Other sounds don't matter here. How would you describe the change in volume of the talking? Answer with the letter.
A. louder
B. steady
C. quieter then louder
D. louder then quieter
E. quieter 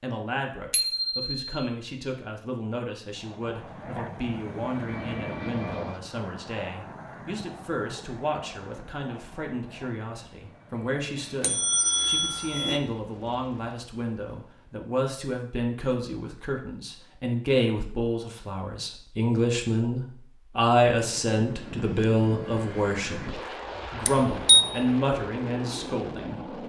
A.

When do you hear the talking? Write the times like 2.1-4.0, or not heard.
0.0-26.4.